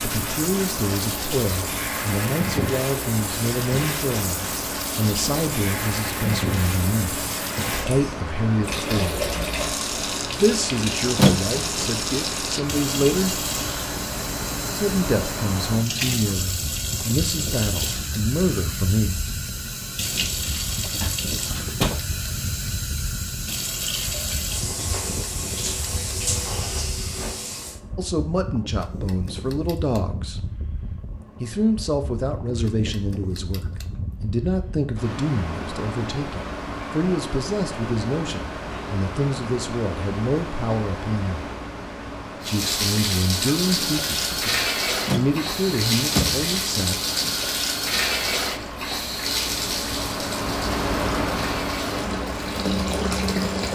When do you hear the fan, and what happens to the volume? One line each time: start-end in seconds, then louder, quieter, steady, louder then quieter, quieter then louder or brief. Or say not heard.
0.0-53.7 quieter then louder.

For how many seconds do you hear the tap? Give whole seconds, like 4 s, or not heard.
39 s.